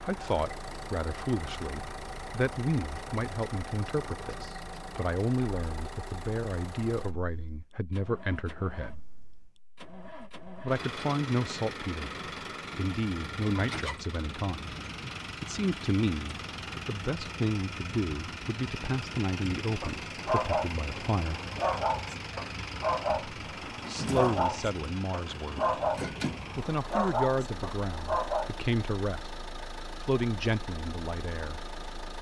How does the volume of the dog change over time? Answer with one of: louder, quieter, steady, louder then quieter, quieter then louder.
steady.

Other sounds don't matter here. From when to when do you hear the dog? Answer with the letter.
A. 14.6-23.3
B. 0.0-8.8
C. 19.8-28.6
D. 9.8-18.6
C.